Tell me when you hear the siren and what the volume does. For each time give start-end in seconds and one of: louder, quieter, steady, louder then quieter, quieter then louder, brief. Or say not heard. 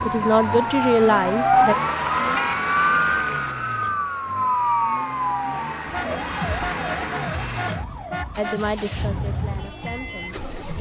0.0-10.7 quieter.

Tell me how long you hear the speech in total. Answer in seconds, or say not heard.
4 s.